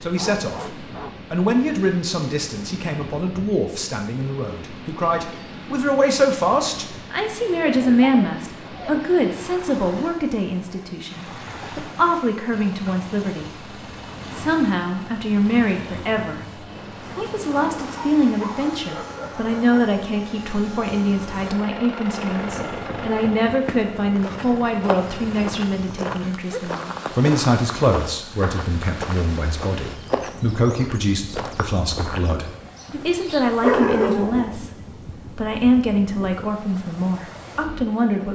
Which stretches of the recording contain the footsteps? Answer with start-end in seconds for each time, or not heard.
23.4-32.5.